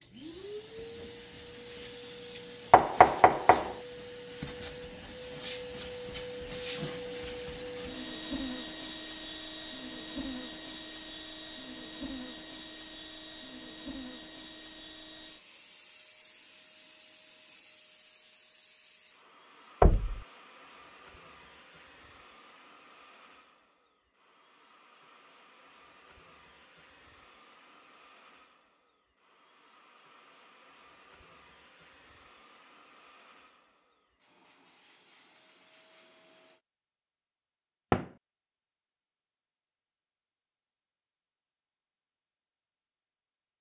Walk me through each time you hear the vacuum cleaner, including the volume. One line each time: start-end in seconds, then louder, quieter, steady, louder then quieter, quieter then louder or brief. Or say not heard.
0.0-36.6 quieter.